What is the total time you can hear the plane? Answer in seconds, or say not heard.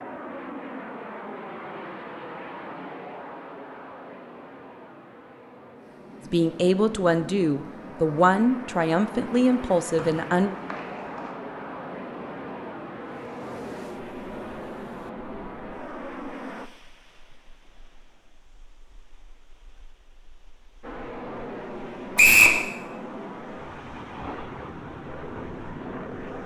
22 s.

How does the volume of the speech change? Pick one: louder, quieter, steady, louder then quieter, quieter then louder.
steady.